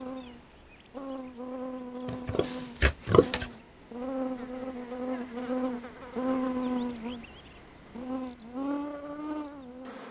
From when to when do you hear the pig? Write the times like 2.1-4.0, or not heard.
2.0-3.5.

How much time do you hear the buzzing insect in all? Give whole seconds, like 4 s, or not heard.
10 s.